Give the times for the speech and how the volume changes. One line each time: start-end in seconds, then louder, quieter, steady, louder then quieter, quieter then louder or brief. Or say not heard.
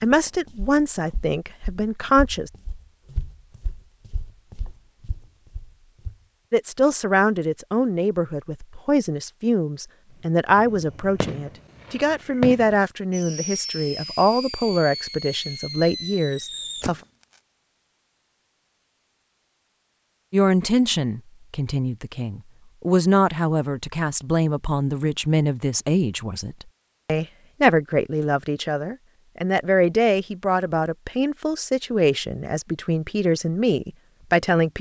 0.0-2.5 brief
6.5-17.0 steady
20.3-34.7 steady.